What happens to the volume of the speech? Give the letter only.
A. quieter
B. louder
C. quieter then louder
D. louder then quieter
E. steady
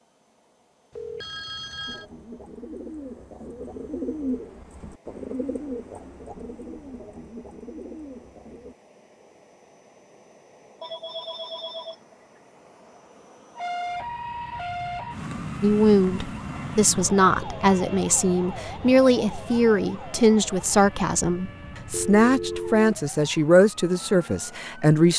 E.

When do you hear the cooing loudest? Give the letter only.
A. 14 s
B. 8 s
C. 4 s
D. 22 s
C.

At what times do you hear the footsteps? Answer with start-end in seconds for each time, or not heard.
not heard.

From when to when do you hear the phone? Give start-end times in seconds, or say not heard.
0.9-2.0, 10.8-12.2, 21.9-22.9.